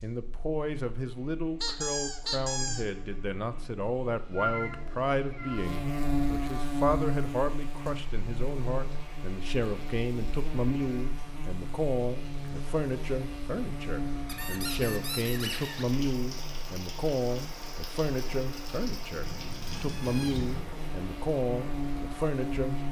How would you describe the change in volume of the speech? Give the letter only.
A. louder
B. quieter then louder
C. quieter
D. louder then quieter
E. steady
E.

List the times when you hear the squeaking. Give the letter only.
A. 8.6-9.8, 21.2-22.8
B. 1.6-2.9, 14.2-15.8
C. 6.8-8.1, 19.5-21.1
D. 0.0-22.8
B.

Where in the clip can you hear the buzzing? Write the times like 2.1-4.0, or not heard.
0.0-22.8.